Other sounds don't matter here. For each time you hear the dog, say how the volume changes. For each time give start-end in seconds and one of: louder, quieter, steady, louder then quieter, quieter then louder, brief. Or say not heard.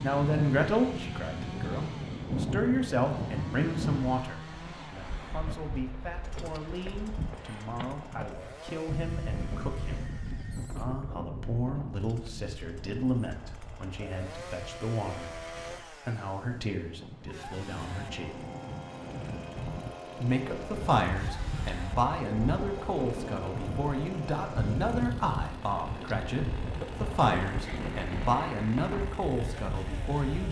not heard.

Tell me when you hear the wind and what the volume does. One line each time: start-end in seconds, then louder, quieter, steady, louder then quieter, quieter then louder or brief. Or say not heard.
0.0-30.2 quieter then louder.